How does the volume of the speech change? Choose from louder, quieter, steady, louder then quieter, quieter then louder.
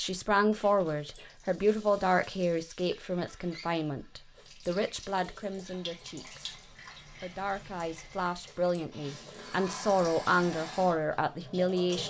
quieter then louder.